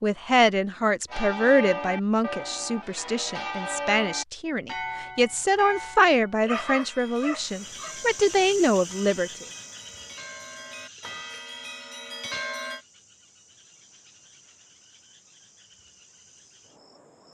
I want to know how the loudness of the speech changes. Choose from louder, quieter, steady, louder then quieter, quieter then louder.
quieter then louder.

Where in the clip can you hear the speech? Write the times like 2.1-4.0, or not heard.
0.0-9.4.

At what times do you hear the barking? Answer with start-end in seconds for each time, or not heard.
6.4-8.0.